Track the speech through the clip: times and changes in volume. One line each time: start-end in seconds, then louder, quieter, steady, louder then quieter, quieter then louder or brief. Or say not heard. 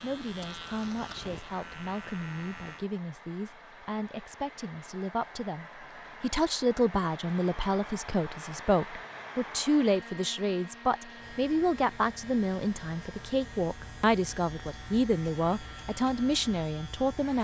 0.0-17.4 louder.